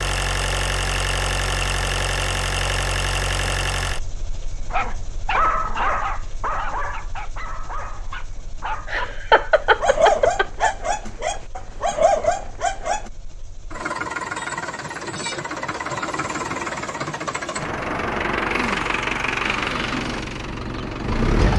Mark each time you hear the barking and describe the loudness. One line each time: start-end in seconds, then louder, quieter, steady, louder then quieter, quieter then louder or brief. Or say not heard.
4.7-13.1 quieter then louder.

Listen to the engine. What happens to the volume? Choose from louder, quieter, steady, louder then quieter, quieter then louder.
quieter then louder.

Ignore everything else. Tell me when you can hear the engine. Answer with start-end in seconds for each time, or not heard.
0.0-21.5.